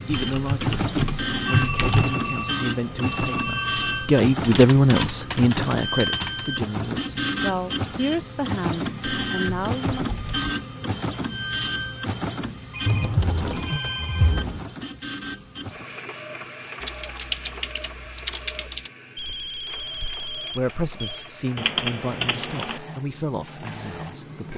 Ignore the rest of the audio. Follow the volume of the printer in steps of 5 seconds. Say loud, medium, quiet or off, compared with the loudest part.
loud, loud, loud, medium, quiet.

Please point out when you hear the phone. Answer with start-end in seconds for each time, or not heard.
1.4-4.0, 12.7-14.4, 19.1-21.3.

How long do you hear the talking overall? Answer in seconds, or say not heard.
14 s.